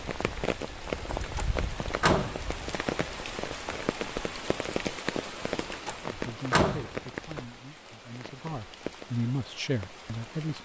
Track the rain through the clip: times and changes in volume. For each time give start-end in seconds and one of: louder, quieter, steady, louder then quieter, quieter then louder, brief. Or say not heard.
0.0-10.6 quieter.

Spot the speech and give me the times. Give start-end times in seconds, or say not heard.
6.0-10.6.